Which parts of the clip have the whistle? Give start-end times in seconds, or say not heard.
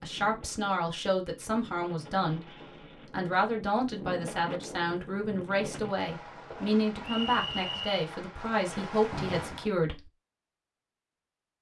7.0-8.0.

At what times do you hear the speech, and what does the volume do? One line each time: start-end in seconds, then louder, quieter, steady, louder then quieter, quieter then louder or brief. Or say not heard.
0.0-2.5 brief
3.1-10.1 steady.